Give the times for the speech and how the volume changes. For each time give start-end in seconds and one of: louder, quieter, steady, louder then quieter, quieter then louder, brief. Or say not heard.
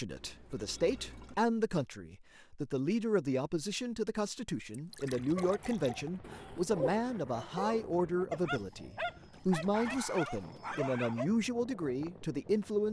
0.0-12.8 steady.